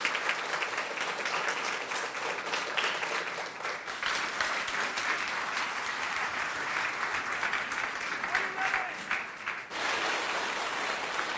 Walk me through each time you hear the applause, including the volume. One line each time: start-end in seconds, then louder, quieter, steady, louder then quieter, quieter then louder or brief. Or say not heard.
0.0-11.3 steady.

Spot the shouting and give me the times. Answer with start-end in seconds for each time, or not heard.
8.2-9.2.